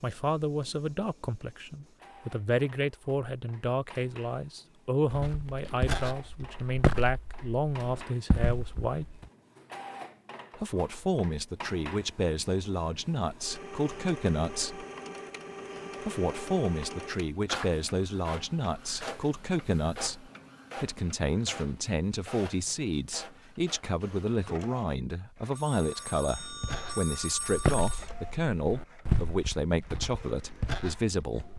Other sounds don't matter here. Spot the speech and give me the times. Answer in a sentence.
You can hear the speech from 0.0 to 9.1 s, from 10.6 to 14.8 s and from 16.0 to 31.5 s.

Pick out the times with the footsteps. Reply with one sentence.
You can hear the footsteps from 5.1 to 9.2 s and from 26.2 to 31.5 s.